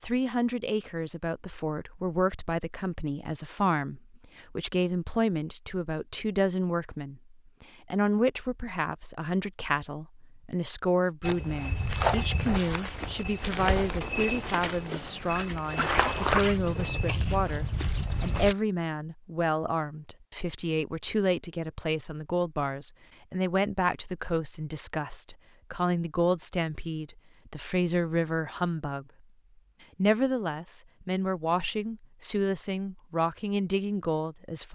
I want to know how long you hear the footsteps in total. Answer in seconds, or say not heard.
7 s.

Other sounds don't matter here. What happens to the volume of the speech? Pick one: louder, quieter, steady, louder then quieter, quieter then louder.
steady.